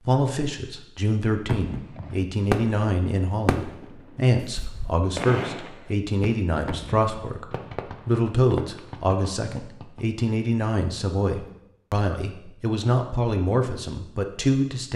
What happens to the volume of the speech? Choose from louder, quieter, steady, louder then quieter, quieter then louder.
steady.